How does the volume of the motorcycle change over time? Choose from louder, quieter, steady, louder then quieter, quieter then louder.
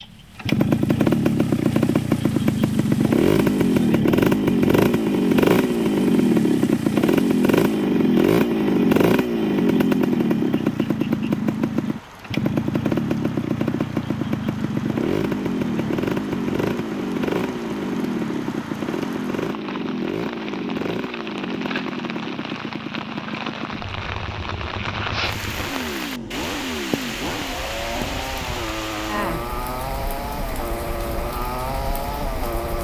quieter.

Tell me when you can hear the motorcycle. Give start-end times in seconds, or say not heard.
0.0-32.7.